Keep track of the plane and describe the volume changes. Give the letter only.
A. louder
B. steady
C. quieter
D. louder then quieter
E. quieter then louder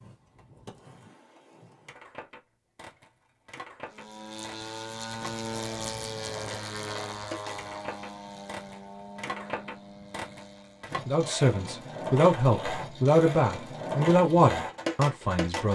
C.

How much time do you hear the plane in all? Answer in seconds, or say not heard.
7 s.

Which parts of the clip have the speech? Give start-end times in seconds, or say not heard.
11.1-15.6.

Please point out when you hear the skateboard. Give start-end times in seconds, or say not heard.
0.0-15.6.